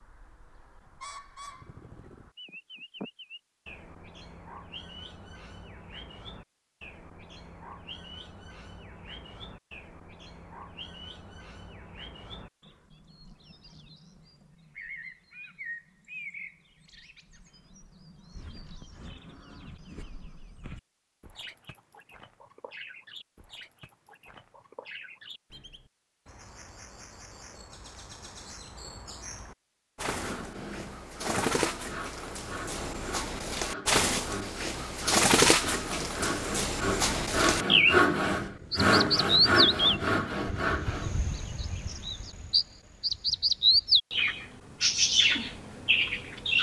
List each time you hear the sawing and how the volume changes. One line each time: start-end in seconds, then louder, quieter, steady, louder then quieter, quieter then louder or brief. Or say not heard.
30.1-41.1 louder.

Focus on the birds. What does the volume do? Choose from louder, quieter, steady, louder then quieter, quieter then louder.
louder.